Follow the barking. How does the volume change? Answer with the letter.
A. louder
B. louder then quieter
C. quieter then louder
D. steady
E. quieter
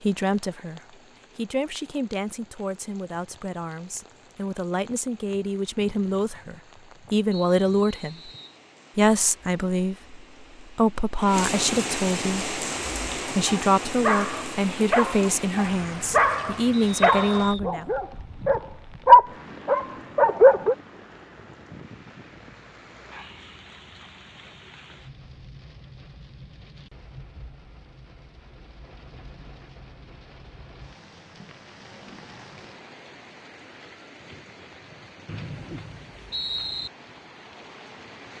A.